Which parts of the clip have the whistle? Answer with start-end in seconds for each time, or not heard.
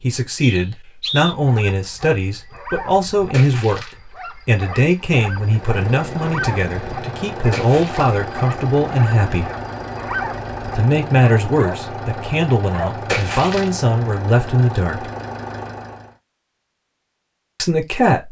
0.4-1.4.